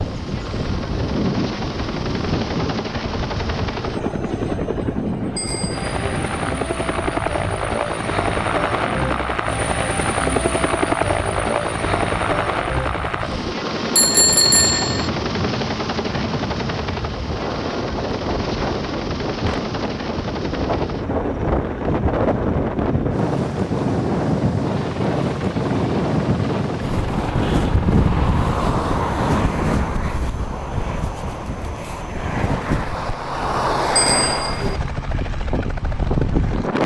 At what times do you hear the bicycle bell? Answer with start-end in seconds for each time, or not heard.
5.3-6.2, 13.9-15.1, 34.0-34.8.